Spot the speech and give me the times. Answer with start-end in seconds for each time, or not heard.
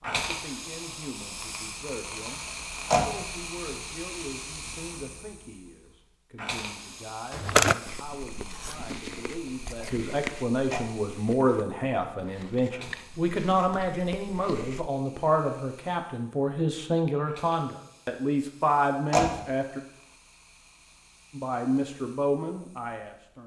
0.0-19.8, 21.3-23.4.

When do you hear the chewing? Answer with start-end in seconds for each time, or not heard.
7.3-14.9.